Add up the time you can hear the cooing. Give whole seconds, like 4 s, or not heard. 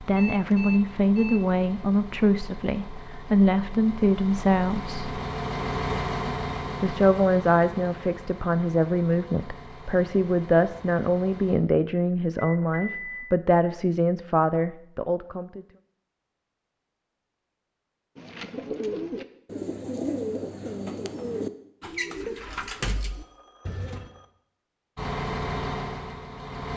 6 s.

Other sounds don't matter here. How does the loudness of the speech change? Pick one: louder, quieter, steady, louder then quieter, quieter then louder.
steady.